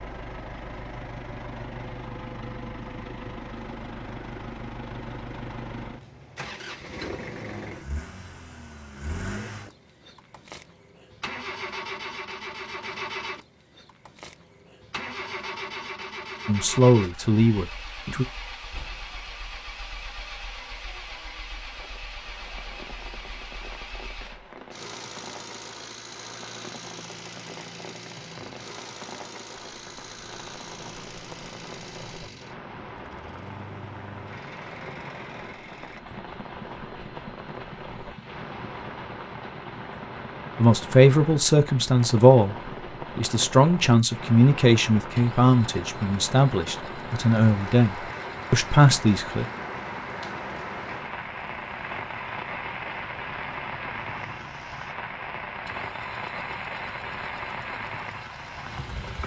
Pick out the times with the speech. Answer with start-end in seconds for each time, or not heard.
16.4-18.2, 40.5-42.5, 43.1-49.5.